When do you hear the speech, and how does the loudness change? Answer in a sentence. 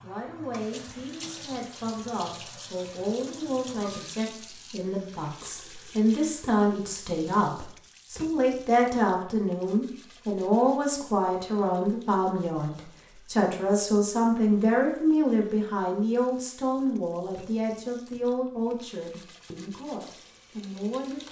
You can hear the speech from 0.0 to 21.2 s, getting louder then quieter.